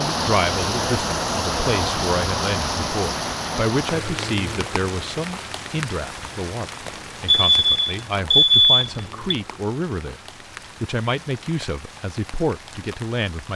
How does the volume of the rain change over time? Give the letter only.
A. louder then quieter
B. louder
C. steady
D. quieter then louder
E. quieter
E.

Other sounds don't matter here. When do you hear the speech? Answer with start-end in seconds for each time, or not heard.
0.0-10.2, 10.8-13.5.